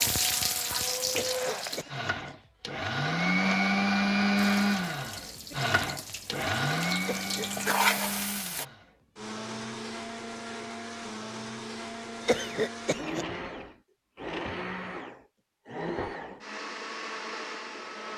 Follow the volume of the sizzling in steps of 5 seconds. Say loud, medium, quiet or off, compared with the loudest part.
loud, loud, off, off.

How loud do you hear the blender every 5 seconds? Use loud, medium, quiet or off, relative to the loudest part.
loud, medium, medium, medium.